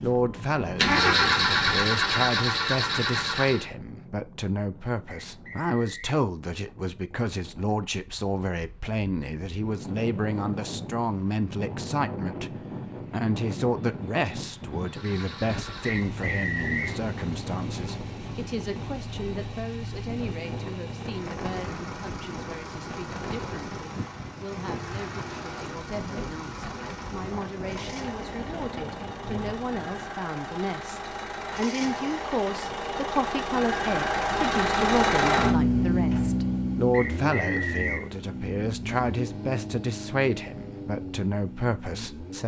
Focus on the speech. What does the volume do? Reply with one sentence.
The loudness of the speech goes down, then up.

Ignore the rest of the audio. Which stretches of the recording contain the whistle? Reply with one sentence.
The whistle can be heard from 5.0 to 6.0 s, from 15.8 to 16.9 s and from 36.9 to 38.0 s.